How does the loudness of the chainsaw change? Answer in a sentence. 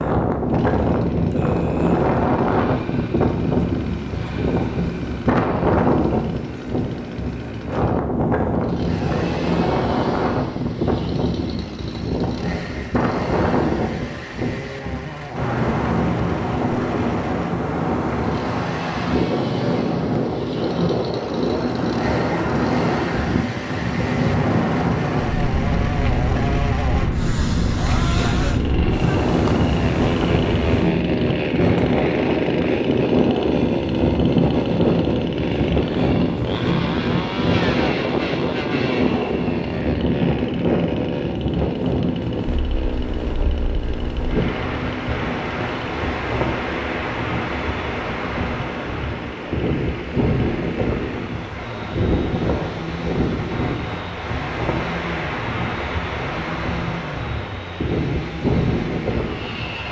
The volume of the chainsaw goes up, then down.